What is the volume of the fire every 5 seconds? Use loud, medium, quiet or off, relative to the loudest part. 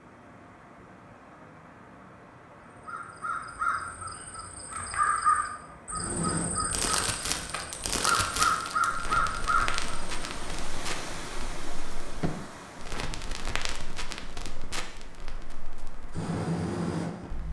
off, loud, medium, loud.